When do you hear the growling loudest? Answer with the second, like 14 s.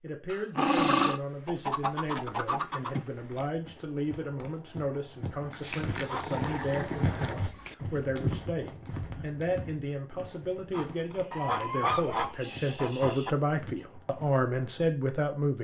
1 s.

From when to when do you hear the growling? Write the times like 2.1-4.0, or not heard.
0.3-1.2, 5.5-7.3, 10.7-12.4.